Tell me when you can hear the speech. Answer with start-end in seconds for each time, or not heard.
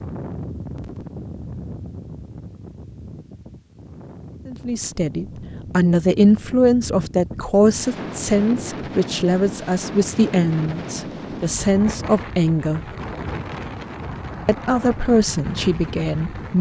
4.5-12.8, 14.4-16.5.